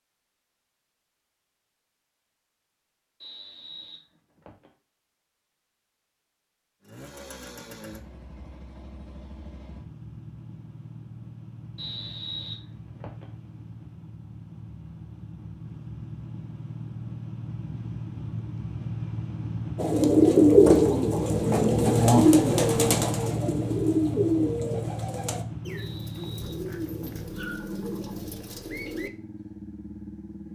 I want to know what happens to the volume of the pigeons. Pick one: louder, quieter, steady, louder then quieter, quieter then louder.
quieter.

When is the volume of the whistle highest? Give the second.
12 s.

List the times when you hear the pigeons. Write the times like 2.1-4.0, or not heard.
19.8-29.1.